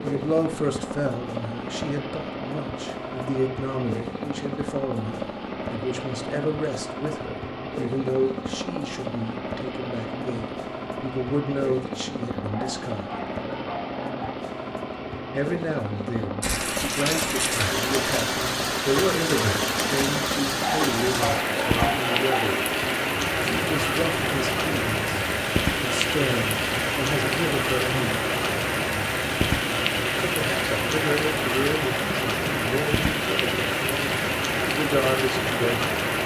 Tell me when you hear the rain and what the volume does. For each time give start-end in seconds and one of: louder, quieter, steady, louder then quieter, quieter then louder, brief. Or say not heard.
16.4-36.2 steady.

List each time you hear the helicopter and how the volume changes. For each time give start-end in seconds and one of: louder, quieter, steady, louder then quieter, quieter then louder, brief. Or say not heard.
0.0-36.2 steady.